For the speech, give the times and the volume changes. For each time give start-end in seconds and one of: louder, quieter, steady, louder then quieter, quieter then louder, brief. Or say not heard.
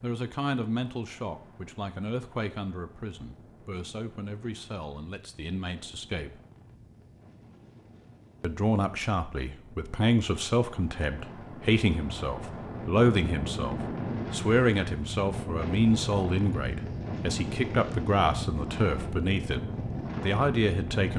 0.0-6.4 quieter
8.4-21.1 steady.